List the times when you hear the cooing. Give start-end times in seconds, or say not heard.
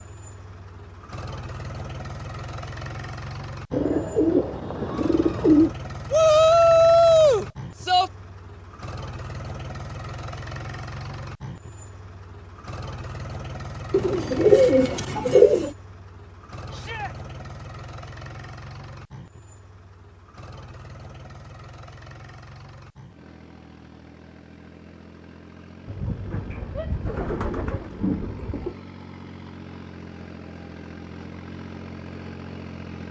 3.7-5.7, 13.9-15.7, 25.9-28.8.